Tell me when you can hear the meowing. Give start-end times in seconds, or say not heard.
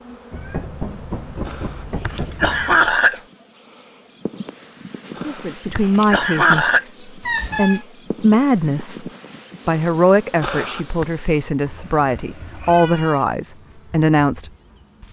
0.3-2.9, 7.2-7.8, 11.6-13.2.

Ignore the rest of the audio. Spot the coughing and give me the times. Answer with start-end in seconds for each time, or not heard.
1.4-3.2, 5.2-6.8, 10.4-11.1.